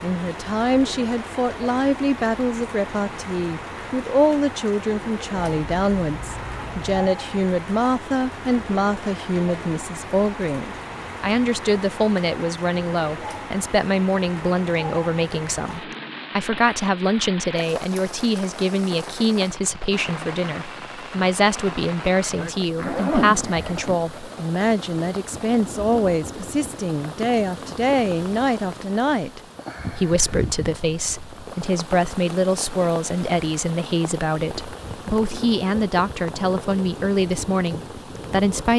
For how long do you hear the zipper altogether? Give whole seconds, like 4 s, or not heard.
3 s.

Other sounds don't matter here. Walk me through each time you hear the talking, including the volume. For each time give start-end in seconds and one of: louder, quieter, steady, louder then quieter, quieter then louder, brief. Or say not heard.
0.0-38.7 steady.